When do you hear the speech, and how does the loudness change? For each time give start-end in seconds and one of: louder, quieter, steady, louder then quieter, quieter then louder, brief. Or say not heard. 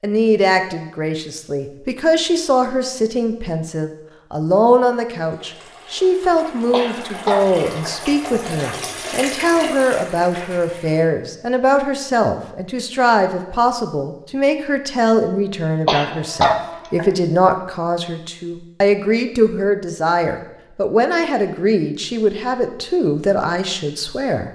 0.0-24.4 steady.